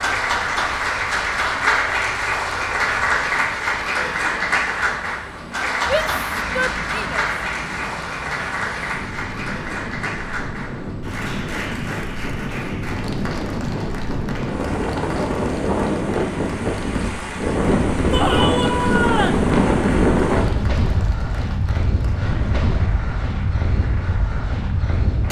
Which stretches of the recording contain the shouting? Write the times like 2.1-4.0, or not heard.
5.8-7.2, 18.1-19.4.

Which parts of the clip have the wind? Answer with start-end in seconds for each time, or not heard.
0.0-25.2.